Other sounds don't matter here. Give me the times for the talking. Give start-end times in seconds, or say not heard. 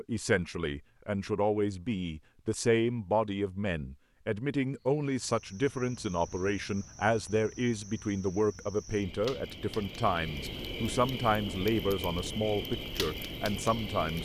0.0-14.2.